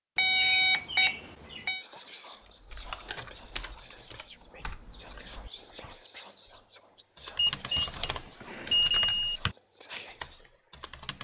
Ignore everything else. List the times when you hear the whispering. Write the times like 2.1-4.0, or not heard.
1.7-10.4.